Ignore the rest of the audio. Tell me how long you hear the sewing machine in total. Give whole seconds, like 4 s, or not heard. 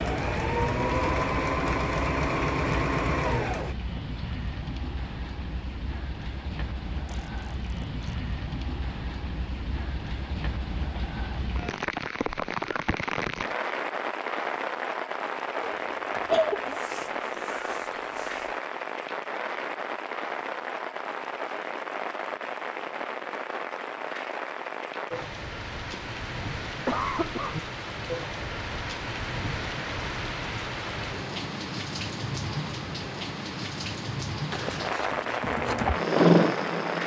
6 s.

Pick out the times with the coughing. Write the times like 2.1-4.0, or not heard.
15.6-16.8, 25.9-27.6.